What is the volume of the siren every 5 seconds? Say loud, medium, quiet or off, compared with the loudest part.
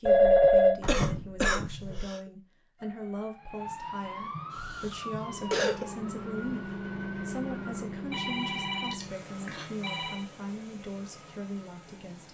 loud, loud, off.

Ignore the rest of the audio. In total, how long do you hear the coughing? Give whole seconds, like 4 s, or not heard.
4 s.